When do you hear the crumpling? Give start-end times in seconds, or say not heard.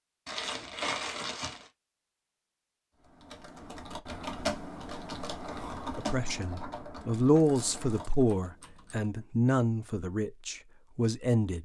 0.2-1.7, 7.0-8.2.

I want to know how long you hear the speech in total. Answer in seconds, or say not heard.
6 s.